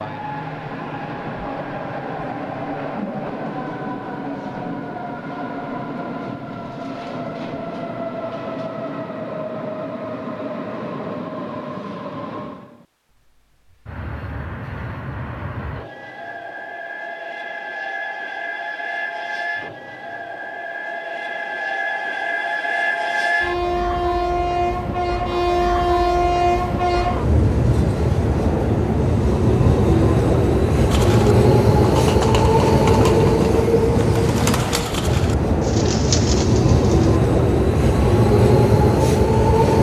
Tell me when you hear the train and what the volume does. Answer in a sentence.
You can hear the train from 0.0 to 39.7 s, getting louder.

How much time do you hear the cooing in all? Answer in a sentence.
You can hear the cooing for 6 seconds altogether.